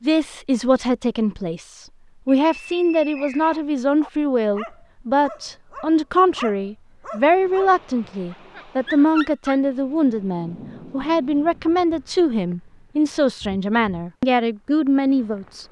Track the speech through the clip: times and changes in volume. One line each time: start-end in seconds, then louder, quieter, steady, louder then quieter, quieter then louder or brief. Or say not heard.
0.0-15.6 steady.